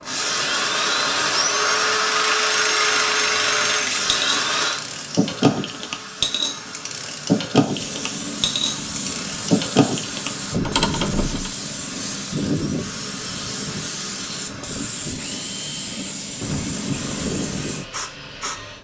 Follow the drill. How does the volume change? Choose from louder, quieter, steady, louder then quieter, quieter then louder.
quieter.